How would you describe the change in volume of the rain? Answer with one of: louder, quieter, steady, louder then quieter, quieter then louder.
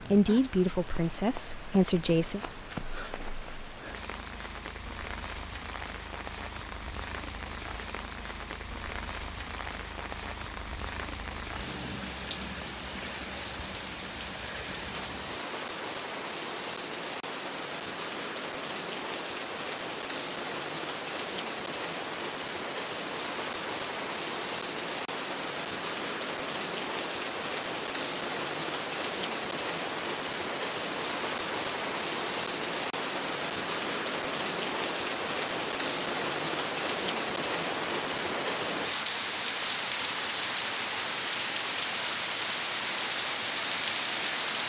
louder.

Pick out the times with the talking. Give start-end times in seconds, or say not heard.
0.0-2.4.